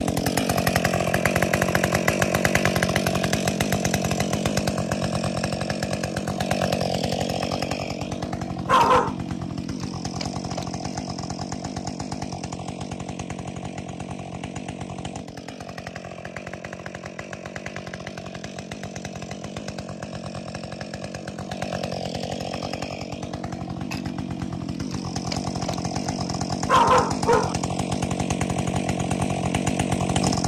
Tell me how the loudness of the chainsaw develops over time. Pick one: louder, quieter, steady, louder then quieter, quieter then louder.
quieter then louder.